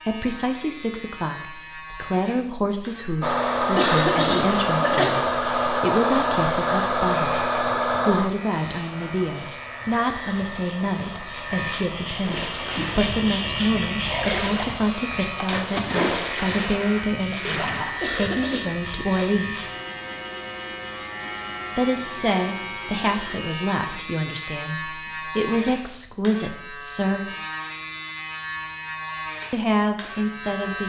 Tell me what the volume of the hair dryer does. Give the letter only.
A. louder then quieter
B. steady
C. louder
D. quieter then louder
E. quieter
E.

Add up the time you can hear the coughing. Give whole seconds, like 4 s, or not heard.
2 s.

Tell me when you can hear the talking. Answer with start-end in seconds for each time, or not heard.
0.1-19.6, 21.8-27.3, 29.5-30.8.